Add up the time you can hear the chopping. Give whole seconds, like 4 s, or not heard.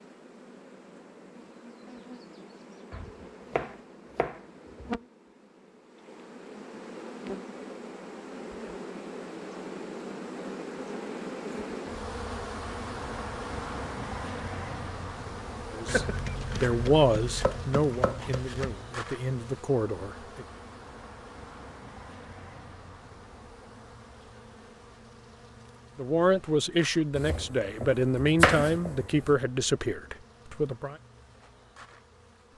7 s.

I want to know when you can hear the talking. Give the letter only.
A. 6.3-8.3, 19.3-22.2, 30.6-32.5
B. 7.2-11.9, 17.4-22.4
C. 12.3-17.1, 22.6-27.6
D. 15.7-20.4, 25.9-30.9
D.